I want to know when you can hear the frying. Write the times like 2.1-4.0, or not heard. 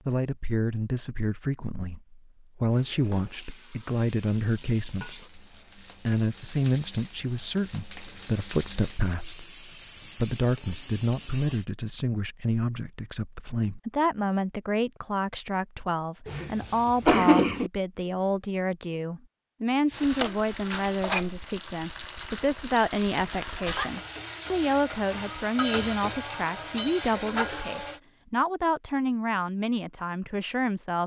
2.6-11.7, 19.9-28.0.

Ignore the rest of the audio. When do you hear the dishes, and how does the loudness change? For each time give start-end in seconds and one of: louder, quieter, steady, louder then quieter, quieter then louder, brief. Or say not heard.
not heard.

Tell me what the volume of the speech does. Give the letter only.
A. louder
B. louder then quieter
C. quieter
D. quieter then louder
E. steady
E.